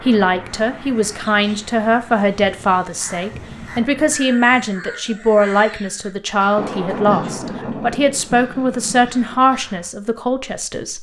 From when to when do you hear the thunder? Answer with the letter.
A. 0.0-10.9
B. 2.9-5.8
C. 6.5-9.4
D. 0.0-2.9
C.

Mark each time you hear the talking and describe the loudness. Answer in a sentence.
You can hear the talking from 0.0 to 10.9 s, at a steady volume.